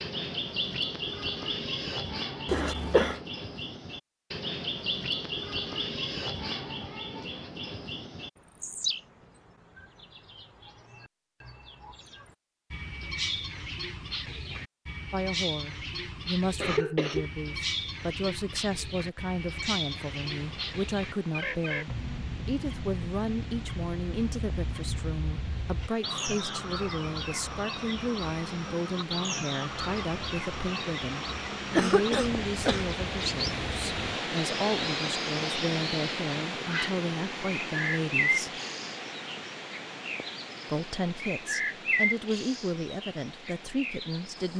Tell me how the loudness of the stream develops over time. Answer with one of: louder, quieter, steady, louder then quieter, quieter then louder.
louder then quieter.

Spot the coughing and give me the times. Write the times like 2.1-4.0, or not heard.
2.5-3.2, 16.6-17.3, 31.8-32.9.